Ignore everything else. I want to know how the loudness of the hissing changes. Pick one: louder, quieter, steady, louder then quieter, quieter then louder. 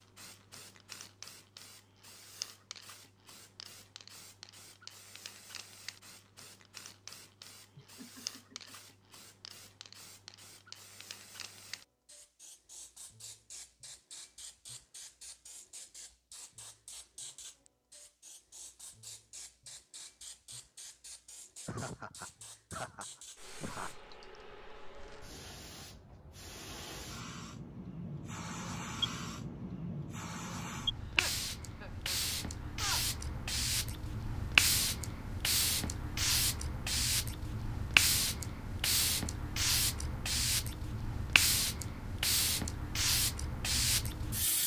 louder.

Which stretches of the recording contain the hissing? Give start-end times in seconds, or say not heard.
0.0-44.6.